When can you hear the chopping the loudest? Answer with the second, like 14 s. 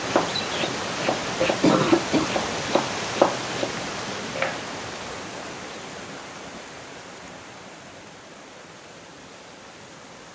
3 s.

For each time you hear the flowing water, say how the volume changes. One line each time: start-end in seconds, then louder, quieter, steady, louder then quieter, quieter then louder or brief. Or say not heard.
0.0-10.3 quieter.